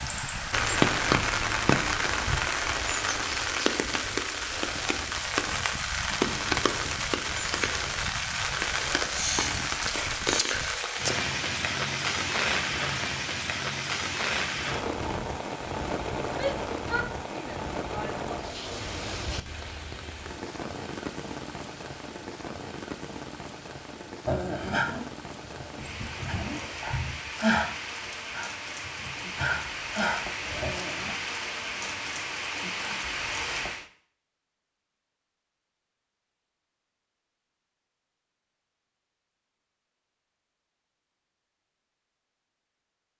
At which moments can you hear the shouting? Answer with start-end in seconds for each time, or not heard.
16.3-18.3.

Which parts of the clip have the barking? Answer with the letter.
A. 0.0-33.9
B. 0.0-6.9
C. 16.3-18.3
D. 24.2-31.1
D.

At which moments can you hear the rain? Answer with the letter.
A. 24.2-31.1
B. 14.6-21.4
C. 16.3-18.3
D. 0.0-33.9
D.